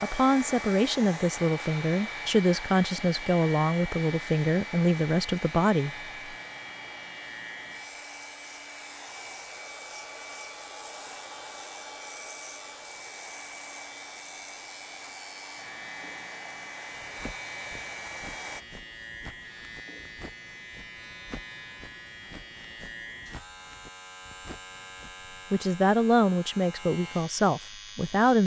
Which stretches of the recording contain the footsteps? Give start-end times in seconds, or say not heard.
17.1-25.5.